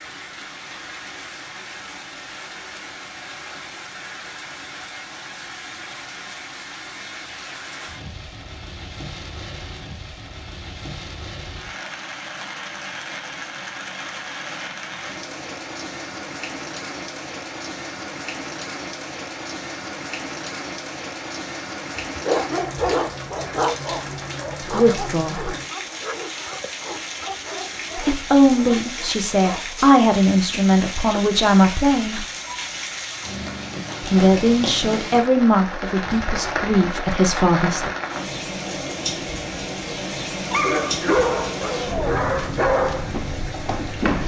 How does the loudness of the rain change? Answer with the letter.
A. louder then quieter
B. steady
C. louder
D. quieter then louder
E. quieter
C.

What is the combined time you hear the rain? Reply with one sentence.
The rain can be heard for 44 seconds in total.